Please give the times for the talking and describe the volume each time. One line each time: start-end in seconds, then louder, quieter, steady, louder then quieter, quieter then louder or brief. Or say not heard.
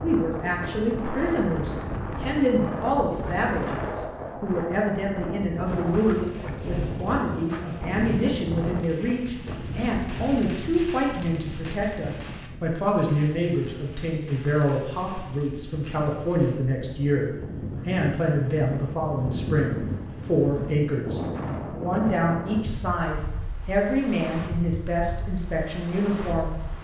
0.0-26.6 steady.